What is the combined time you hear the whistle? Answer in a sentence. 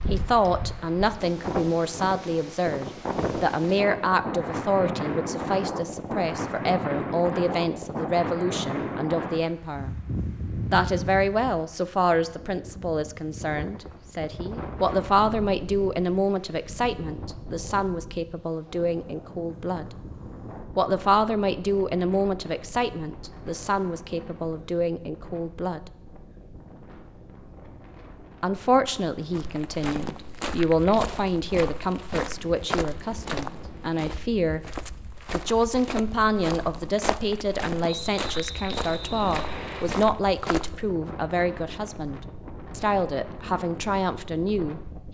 The whistle can be heard for 2 seconds in total.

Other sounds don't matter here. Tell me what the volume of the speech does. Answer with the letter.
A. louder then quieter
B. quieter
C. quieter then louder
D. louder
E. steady
E.